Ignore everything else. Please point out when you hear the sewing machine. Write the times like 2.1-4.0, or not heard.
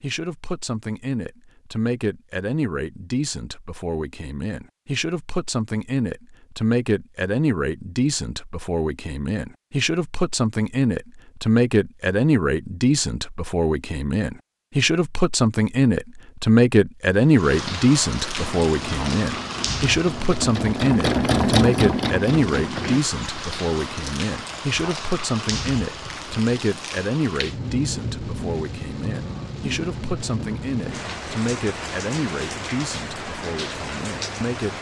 18.4-23.0.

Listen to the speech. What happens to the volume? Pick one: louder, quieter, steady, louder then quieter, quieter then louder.
louder then quieter.